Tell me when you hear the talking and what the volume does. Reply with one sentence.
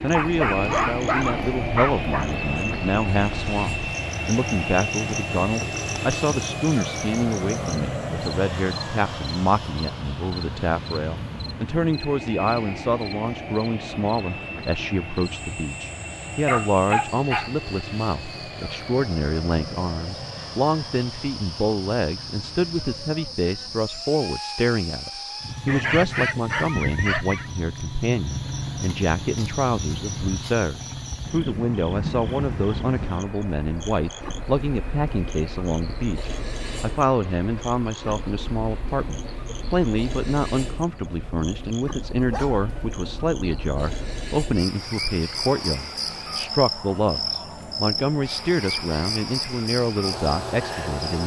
You can hear the talking from 0.0 to 51.2 s, at a steady volume.